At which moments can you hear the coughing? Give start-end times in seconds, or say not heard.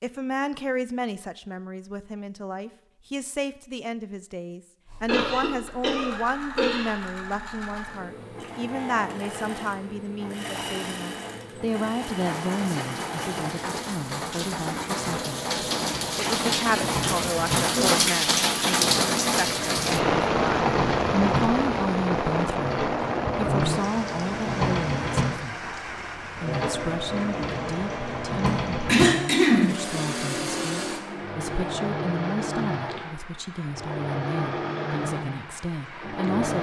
5.0-7.0, 17.6-18.0, 28.4-29.8.